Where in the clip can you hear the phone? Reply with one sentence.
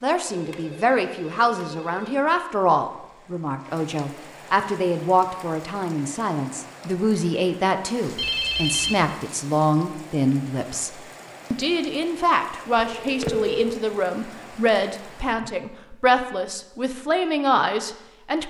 You can hear the phone from 0.2 to 2.2 s, from 8.2 to 9.1 s and from 13.0 to 13.8 s.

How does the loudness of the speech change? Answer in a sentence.
The loudness of the speech stays about the same.